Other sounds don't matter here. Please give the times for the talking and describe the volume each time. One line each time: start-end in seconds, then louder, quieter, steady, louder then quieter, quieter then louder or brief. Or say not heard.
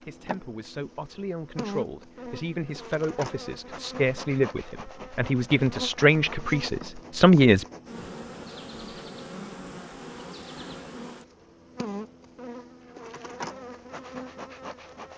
0.0-7.7 louder.